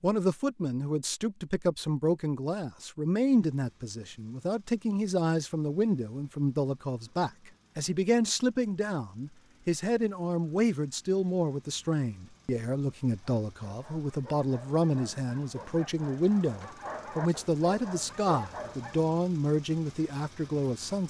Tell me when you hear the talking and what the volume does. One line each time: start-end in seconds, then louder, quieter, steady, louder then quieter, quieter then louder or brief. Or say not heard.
0.0-21.0 steady.